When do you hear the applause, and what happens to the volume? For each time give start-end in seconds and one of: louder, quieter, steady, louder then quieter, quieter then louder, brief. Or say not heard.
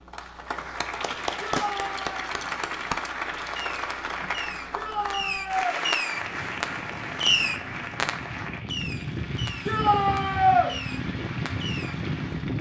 0.0-12.5 quieter.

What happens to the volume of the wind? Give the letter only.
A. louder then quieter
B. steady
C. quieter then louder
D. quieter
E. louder
E.